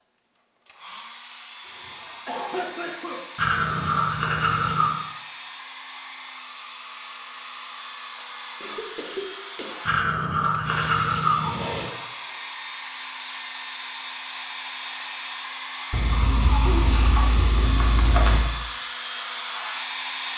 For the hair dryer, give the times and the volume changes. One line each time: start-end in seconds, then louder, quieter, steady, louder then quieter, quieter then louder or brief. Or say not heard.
0.3-20.3 louder.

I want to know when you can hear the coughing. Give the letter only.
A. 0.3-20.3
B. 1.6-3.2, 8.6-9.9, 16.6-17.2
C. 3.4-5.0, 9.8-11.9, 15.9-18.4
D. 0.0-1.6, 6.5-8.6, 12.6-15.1
B.